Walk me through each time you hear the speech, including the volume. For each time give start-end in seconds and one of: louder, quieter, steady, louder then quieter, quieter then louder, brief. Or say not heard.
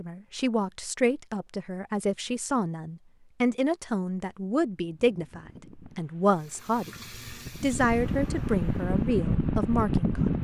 0.0-6.9 steady
7.6-10.3 brief.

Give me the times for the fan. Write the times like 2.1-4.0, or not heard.
4.9-10.3.